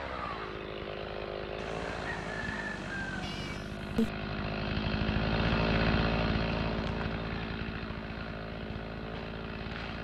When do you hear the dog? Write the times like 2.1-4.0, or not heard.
not heard.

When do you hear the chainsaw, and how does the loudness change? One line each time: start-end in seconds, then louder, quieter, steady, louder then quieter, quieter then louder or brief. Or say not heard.
0.0-9.9 louder then quieter.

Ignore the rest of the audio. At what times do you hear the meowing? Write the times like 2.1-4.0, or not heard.
3.2-4.1.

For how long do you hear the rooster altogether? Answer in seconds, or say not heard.
2 s.